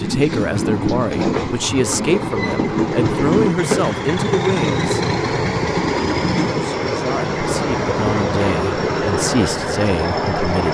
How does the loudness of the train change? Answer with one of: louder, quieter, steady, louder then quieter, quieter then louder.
steady.